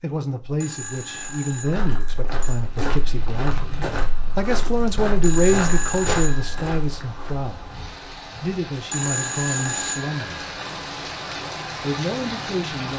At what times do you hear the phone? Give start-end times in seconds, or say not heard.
0.6-2.6, 5.2-6.6, 8.9-10.3.